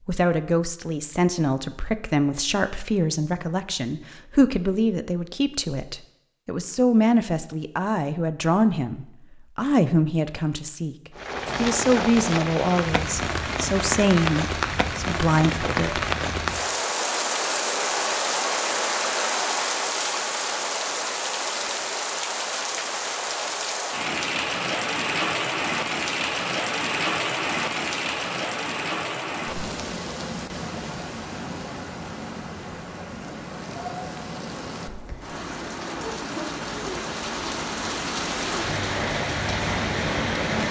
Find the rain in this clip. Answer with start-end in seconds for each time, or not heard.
11.2-40.6.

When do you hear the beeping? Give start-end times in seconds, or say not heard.
not heard.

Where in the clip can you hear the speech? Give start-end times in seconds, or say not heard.
0.1-10.9, 11.6-16.0.